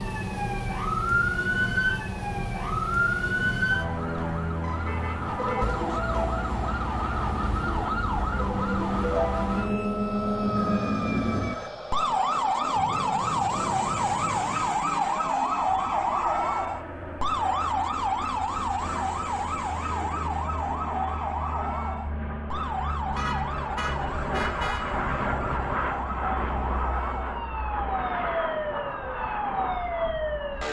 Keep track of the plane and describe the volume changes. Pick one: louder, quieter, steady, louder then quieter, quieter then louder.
louder.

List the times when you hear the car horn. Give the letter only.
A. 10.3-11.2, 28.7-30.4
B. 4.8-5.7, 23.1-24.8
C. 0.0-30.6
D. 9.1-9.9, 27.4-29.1
B.